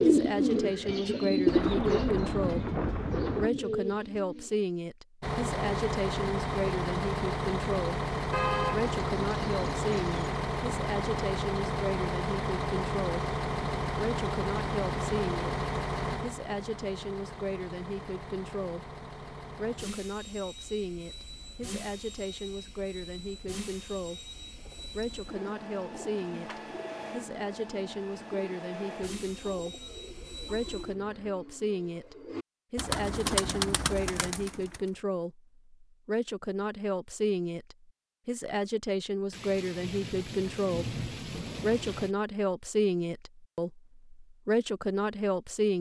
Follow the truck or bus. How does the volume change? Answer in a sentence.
The volume of the truck or bus goes down.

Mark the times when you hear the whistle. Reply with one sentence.
The whistle can't be heard in this clip.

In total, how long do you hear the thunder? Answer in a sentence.
You can hear the thunder for 5 seconds altogether.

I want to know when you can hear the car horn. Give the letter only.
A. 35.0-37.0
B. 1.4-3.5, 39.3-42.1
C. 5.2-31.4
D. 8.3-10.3
D.